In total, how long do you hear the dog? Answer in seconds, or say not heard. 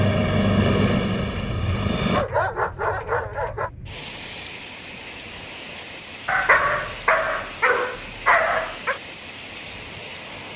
4 s.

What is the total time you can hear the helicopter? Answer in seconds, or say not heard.
2 s.